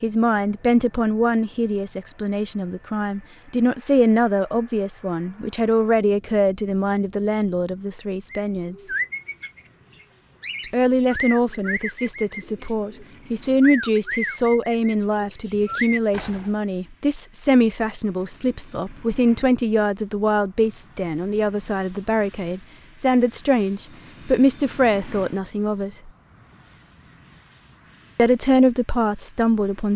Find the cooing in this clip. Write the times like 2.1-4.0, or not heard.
8.3-16.5.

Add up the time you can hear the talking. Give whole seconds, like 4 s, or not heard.
26 s.